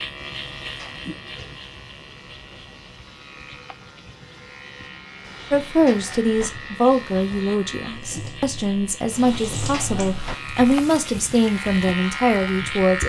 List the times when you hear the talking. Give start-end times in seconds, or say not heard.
5.5-13.0.